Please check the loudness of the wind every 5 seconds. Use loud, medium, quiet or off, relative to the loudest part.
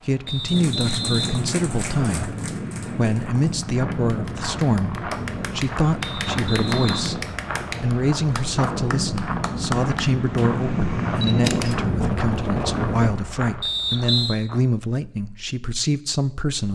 medium, medium, loud, off.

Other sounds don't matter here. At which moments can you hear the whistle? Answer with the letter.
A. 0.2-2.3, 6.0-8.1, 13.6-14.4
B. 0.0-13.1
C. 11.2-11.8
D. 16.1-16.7
A.